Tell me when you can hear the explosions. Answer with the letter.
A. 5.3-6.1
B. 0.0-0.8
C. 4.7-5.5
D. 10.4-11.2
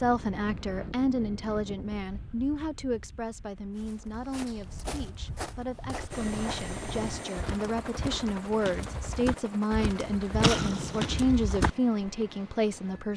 D.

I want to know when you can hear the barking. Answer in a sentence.
You can't hear the barking here.